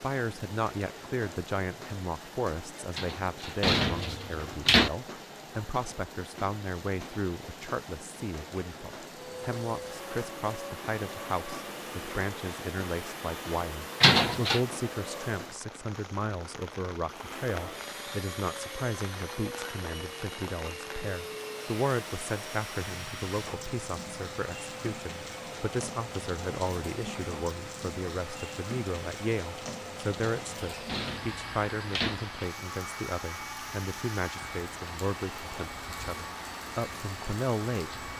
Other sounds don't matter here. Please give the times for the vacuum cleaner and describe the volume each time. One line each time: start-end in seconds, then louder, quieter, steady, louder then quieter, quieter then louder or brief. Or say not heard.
9.1-15.4 steady
17.1-38.1 steady.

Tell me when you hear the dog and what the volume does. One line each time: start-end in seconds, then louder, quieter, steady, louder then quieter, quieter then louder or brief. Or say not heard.
not heard.